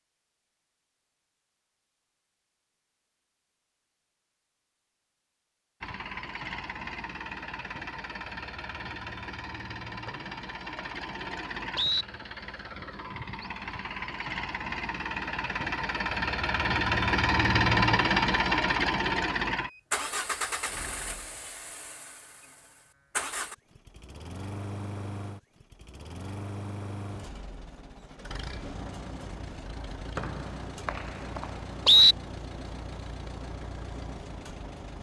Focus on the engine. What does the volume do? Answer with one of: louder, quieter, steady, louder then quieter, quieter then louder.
louder then quieter.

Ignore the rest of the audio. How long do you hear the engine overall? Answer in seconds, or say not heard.
29 s.